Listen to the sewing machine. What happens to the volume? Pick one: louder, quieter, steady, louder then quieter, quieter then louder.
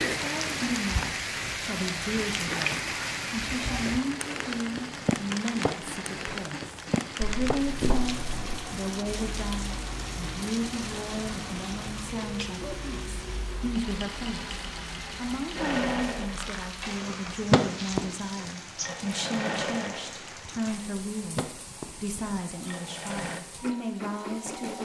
louder then quieter.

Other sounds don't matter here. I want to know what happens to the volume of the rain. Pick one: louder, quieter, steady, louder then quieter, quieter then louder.
quieter.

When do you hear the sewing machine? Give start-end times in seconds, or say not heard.
0.0-24.8.